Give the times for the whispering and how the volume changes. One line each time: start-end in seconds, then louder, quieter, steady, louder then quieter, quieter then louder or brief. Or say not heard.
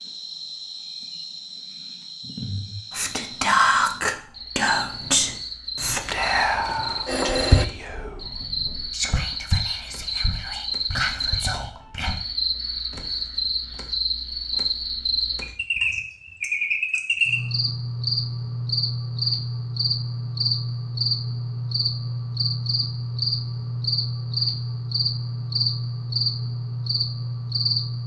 2.9-12.2 quieter.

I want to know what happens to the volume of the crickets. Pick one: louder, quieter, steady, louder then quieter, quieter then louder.
louder.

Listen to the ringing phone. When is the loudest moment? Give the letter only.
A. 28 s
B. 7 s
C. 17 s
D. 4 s
B.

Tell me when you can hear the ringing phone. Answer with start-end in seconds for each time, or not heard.
5.8-7.7.